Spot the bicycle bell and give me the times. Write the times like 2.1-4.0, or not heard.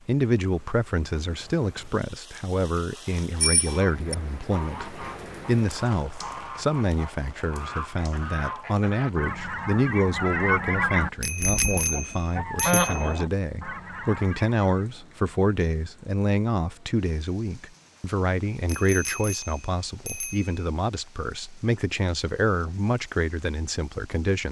3.4-4.2, 11.2-13.2, 18.6-20.6.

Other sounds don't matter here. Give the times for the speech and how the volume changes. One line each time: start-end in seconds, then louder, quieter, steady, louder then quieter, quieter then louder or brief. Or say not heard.
0.1-24.4 steady.